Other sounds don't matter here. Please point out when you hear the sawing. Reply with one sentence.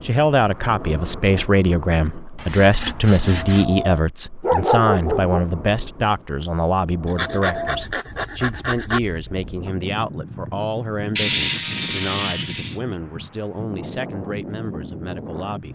The sawing can be heard from 2.4 to 3.6 s, from 7.0 to 9.0 s and from 11.2 to 12.8 s.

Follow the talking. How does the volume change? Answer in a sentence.
The loudness of the talking goes down.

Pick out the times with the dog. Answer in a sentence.
You can hear the dog from 4.4 to 5.5 s.